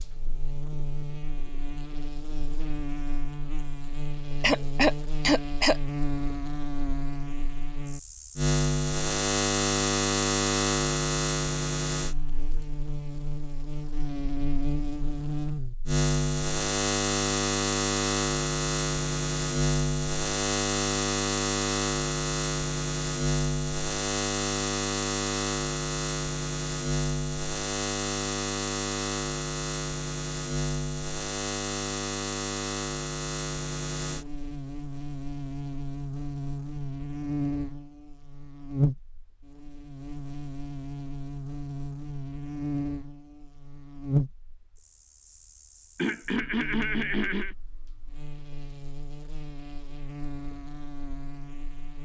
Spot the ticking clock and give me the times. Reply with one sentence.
The ticking clock can't be heard in this clip.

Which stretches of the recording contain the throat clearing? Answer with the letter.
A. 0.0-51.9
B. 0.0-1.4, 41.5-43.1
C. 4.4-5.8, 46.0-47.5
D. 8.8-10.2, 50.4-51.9
C.